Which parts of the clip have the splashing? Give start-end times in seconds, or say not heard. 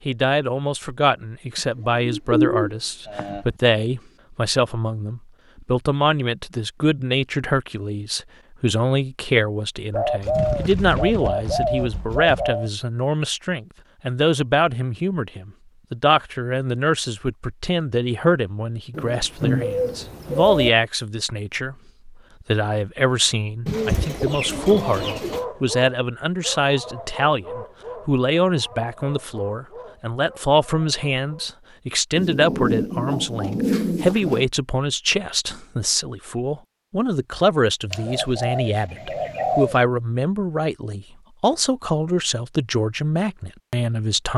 not heard.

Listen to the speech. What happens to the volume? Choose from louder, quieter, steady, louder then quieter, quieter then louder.
steady.